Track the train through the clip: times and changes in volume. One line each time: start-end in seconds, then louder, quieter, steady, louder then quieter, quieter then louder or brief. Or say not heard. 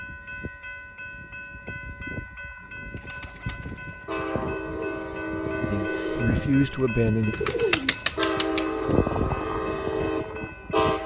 0.0-11.0 louder.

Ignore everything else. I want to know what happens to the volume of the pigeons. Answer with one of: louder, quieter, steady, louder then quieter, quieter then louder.
louder.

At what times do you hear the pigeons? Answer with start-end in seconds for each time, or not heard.
3.0-8.9.